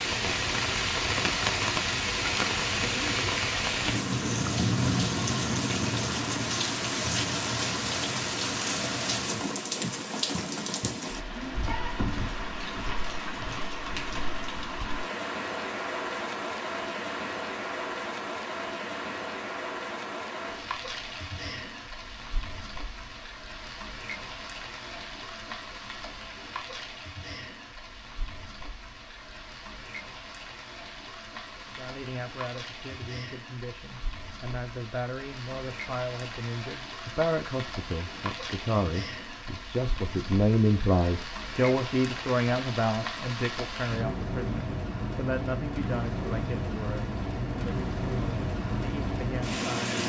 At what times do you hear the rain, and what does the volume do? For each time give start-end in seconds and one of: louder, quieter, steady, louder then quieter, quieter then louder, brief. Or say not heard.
0.0-50.0 quieter then louder.